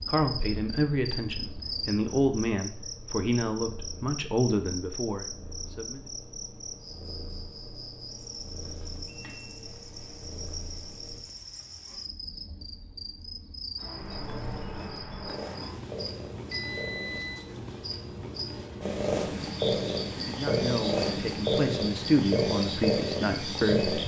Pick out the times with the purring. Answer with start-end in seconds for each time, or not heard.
0.0-11.2, 13.9-17.2, 18.8-24.0.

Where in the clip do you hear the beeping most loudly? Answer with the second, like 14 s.
17 s.